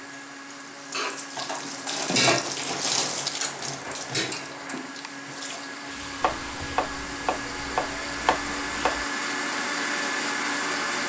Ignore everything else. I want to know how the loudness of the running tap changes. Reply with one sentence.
The loudness of the running tap goes up, then down.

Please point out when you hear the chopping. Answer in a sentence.
The chopping can be heard from 6.2 to 9.1 s.